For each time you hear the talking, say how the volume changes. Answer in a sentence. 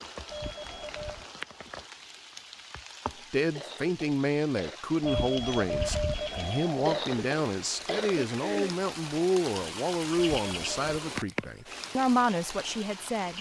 The talking can be heard from 3.3 to 13.3 s, at a steady volume.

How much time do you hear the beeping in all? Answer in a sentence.
You can hear the beeping for 4 seconds altogether.